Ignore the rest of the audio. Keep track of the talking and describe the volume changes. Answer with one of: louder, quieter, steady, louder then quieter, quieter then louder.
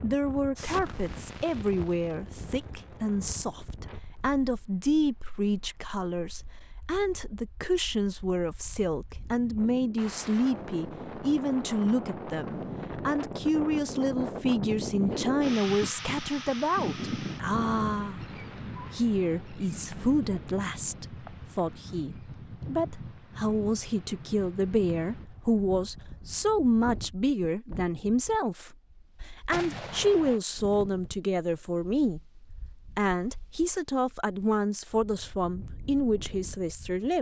steady.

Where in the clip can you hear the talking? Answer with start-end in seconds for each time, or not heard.
0.0-32.2, 33.0-37.1.